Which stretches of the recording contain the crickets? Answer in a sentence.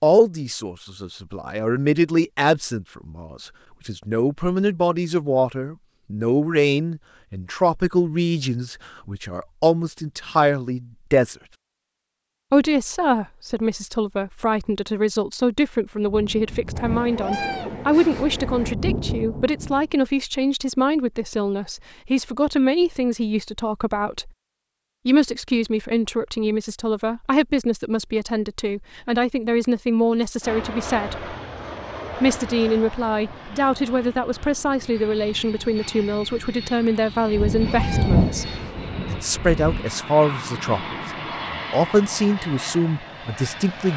The crickets can't be heard in this clip.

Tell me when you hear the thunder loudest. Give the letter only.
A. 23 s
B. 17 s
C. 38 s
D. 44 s
C.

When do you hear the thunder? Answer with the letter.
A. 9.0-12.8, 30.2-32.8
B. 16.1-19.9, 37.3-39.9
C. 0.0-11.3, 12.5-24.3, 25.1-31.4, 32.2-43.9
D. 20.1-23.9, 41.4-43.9
B.